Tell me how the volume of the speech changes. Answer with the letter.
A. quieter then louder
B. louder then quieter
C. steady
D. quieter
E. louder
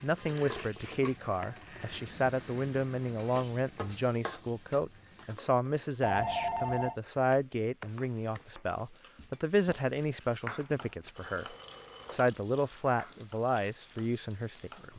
C.